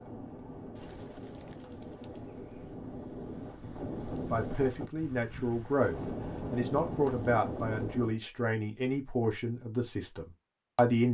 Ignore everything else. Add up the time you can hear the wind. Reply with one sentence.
The wind can be heard for 8 seconds in total.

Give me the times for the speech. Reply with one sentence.
The speech can be heard from 4.3 to 11.0 s.